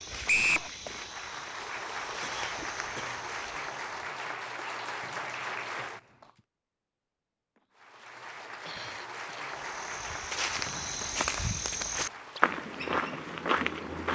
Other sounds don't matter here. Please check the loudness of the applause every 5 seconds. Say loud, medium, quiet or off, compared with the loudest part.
loud, loud, medium.